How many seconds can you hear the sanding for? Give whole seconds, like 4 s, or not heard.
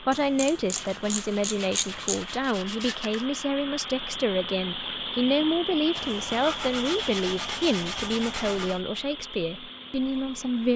5 s.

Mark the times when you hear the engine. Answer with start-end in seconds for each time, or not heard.
0.0-10.7.